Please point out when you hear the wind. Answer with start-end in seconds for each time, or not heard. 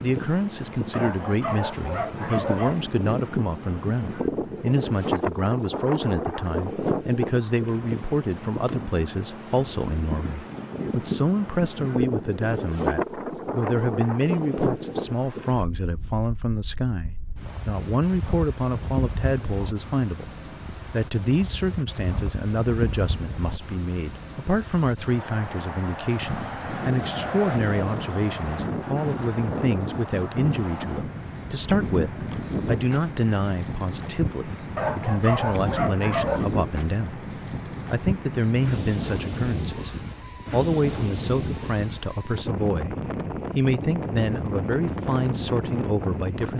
0.0-46.5.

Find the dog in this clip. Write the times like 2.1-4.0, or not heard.
0.9-2.9, 34.8-36.5.